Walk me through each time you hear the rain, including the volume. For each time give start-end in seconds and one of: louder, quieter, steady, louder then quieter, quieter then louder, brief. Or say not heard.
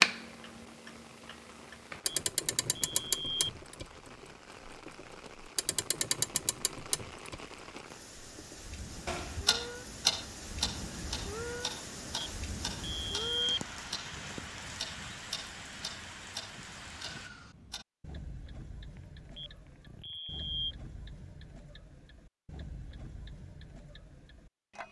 0.1-17.3 louder.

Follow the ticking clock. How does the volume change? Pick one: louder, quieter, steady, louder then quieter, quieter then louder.
quieter.